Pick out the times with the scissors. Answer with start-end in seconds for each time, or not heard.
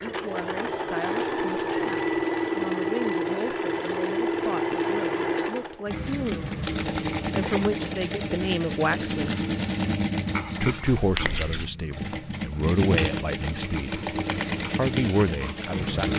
10.8-11.7.